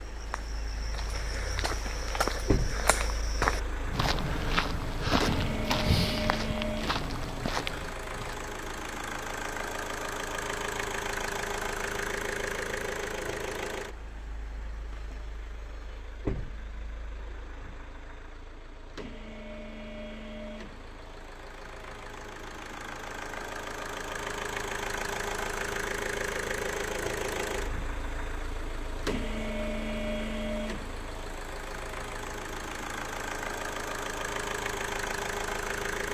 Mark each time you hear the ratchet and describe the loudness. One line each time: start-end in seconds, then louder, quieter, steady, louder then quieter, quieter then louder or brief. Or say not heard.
not heard.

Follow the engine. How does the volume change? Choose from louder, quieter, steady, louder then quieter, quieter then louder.
quieter then louder.